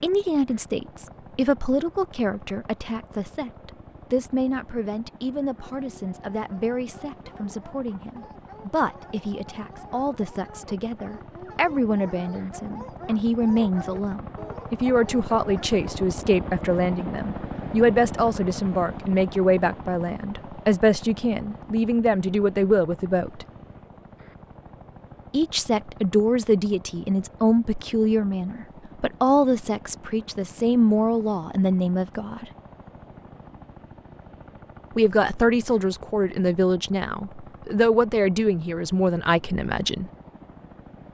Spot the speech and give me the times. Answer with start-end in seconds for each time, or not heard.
0.0-23.4, 25.3-32.5, 35.0-40.1.